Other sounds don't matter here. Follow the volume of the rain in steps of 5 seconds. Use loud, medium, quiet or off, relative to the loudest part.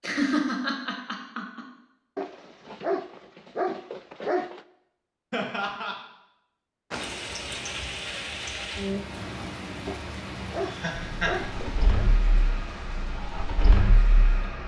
off, loud, medium.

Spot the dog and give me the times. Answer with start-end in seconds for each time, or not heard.
2.1-4.6, 9.8-11.8.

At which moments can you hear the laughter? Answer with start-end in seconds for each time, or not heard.
0.0-1.6, 5.3-6.0, 10.6-11.3.